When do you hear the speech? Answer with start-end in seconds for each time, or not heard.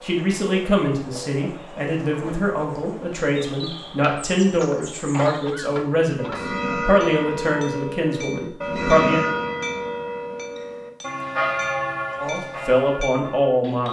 0.0-9.2, 12.2-13.8.